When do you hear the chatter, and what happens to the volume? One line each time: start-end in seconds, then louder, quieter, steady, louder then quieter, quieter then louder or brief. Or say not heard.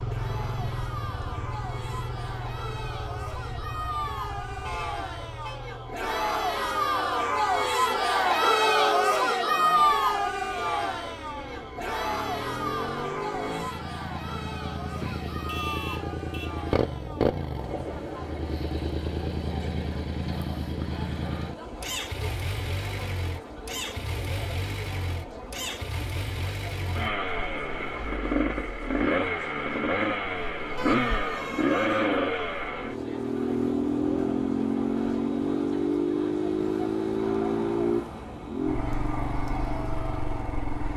0.1-40.8 quieter.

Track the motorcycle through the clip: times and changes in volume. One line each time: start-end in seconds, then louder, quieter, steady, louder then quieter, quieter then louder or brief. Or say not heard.
0.0-40.9 louder.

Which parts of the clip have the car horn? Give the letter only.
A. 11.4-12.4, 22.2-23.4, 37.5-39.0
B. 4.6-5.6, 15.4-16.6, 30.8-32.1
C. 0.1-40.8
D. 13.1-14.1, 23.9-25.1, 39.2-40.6
B.